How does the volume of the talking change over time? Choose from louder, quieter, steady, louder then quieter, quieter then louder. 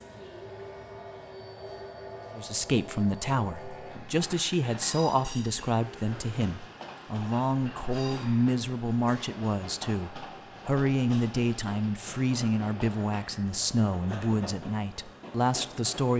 steady.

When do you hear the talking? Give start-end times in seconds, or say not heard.
2.4-16.1.